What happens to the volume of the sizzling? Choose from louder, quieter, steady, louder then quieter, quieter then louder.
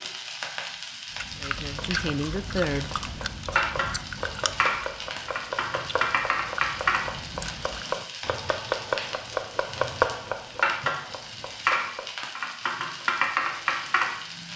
louder.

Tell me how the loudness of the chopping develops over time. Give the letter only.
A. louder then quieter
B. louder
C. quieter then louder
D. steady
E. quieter
A.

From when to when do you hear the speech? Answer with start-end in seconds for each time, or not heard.
1.4-3.0.